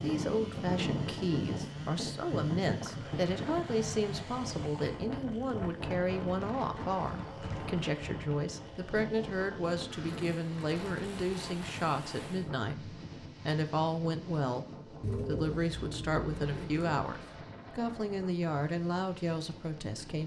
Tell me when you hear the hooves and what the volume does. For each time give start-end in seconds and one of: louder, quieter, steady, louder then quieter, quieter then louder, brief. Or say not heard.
not heard.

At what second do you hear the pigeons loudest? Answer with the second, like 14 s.
15 s.